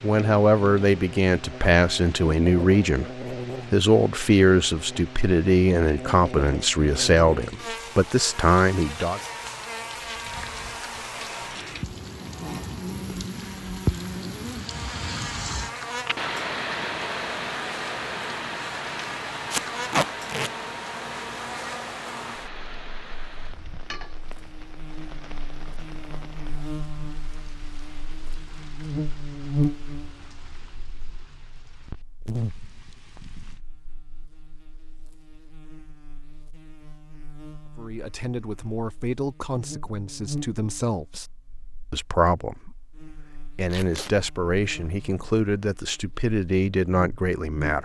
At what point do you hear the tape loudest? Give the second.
20 s.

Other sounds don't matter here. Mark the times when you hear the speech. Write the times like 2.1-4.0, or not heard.
0.0-9.2, 37.8-41.2, 41.9-47.8.